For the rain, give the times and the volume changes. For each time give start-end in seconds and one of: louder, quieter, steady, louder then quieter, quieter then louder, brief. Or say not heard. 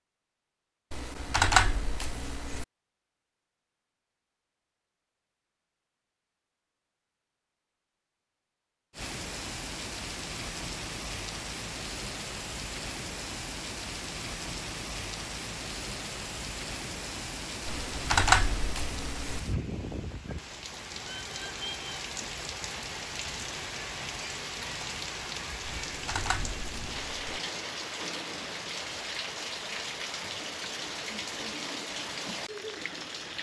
8.9-33.3 steady.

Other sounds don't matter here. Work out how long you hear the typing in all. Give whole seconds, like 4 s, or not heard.
5 s.